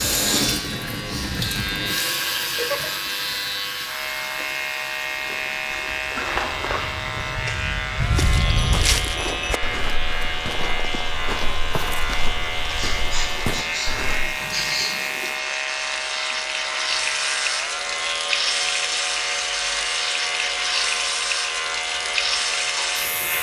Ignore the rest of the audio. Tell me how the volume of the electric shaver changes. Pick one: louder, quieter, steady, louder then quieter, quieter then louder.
steady.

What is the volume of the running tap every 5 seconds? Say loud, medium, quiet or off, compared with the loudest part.
loud, quiet, medium, loud, loud.